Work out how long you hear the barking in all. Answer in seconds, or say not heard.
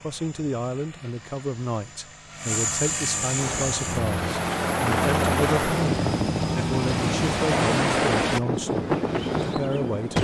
not heard.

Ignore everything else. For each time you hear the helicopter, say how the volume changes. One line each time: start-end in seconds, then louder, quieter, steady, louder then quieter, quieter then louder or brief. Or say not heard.
0.0-10.2 louder then quieter.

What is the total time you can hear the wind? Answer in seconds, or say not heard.
7 s.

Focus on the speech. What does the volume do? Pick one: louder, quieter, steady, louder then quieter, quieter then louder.
steady.